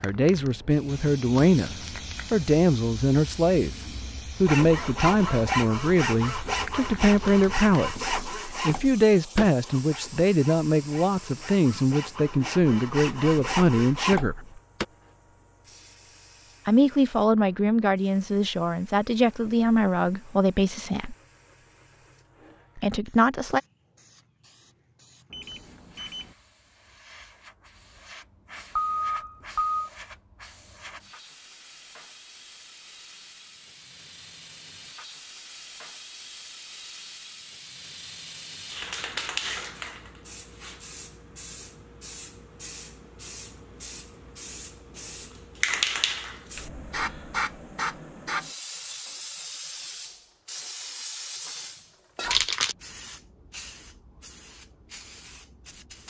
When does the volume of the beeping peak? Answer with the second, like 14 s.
29 s.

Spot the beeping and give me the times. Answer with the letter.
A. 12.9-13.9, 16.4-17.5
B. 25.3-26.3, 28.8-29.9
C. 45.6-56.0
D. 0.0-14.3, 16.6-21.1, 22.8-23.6
B.